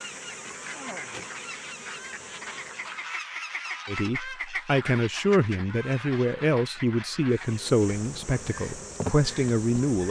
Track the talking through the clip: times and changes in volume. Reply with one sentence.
The talking can be heard from 3.9 to 10.0 s, at a steady volume.